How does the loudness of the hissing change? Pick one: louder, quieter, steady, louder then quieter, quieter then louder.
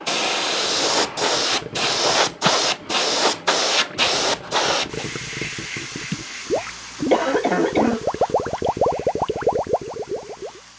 quieter.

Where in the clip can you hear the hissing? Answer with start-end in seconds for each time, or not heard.
0.0-10.7.